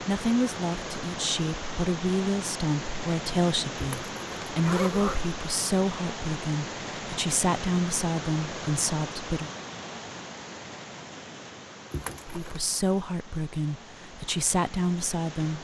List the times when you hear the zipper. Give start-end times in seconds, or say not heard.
3.8-5.3, 11.9-12.6.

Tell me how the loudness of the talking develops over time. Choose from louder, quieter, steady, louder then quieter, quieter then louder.
steady.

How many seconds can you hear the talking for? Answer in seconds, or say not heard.
13 s.